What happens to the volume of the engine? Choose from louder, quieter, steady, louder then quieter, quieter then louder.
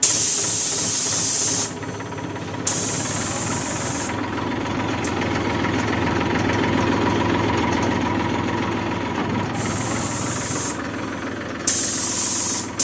louder then quieter.